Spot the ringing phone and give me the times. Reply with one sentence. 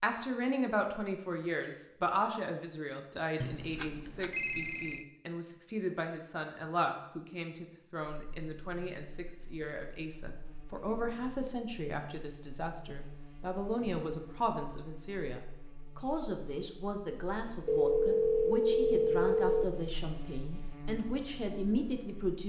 You can hear the ringing phone from 3.4 to 5.0 s and from 17.6 to 19.6 s.